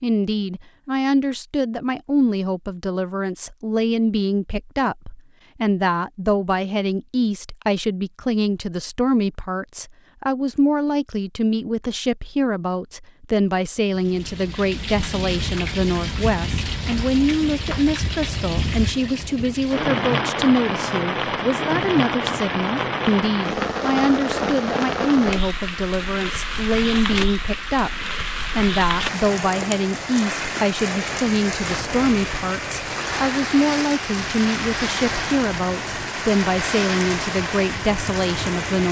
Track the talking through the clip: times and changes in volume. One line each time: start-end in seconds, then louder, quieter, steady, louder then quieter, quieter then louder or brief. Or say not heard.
0.0-38.8 steady.